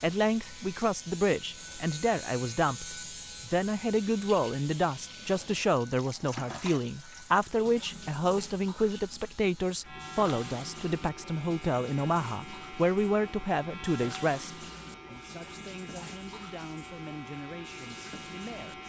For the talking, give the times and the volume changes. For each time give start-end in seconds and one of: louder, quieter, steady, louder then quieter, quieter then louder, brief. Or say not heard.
0.0-18.8 quieter.